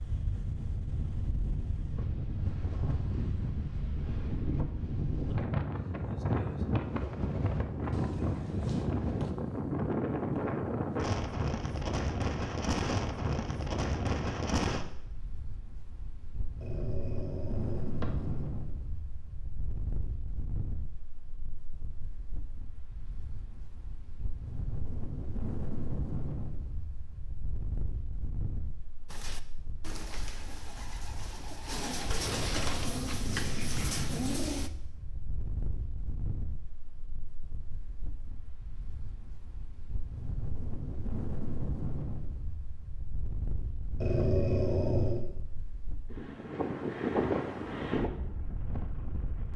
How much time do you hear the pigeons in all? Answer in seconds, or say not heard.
6 s.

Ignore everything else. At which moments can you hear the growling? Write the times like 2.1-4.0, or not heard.
7.9-8.9, 16.6-18.5, 44.0-45.2.